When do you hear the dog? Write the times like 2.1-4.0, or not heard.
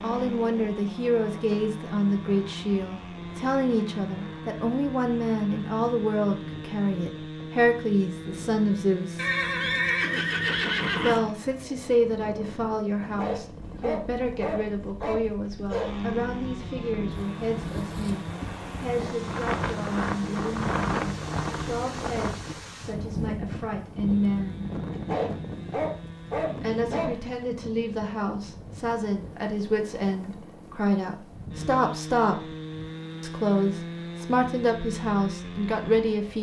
13.0-15.9, 24.9-27.6.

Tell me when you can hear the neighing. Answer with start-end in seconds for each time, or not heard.
9.2-11.2.